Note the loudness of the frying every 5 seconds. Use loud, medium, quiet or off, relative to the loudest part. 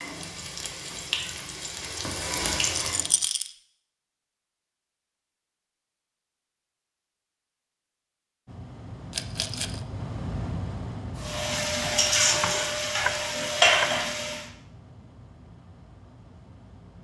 medium, off, loud, off.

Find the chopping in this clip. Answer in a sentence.
You can hear the chopping from 11.8 to 14.1 s.